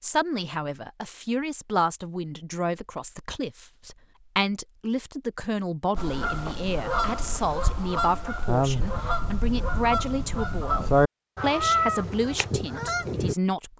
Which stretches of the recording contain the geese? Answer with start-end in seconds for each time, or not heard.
6.0-13.3.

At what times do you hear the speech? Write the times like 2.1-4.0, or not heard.
0.0-13.7.